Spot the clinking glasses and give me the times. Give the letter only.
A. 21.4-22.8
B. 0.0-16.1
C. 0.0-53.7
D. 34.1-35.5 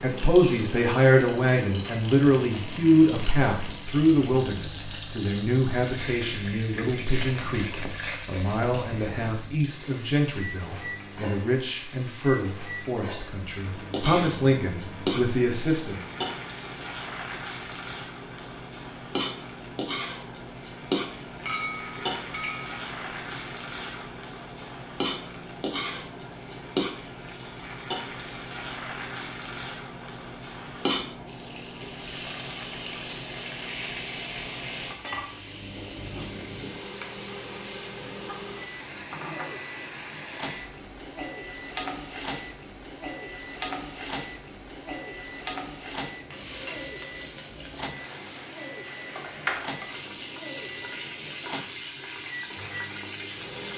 A.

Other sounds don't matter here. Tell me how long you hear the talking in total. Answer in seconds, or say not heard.
16 s.